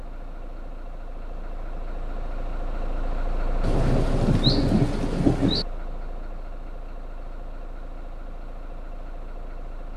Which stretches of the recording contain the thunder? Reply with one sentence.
You can hear the thunder from 3.6 to 5.7 s.